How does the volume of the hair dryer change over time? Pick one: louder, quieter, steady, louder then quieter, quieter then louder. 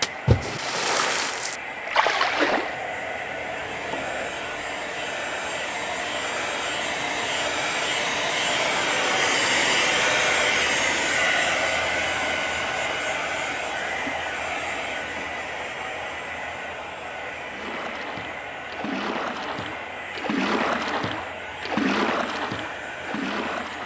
louder then quieter.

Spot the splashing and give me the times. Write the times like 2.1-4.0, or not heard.
0.0-2.8, 17.5-23.8.